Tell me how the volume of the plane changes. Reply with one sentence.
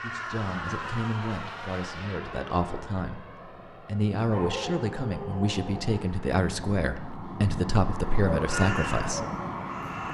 The loudness of the plane goes down, then up.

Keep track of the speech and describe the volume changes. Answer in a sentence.
The loudness of the speech goes up.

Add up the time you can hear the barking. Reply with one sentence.
The barking can be heard for 2 seconds in total.